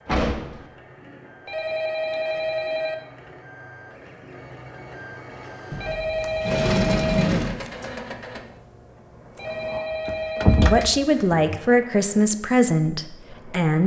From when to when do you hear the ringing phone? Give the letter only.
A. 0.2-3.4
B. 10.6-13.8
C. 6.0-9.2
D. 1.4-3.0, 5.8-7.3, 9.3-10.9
D.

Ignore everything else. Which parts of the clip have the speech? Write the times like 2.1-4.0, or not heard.
10.6-13.8.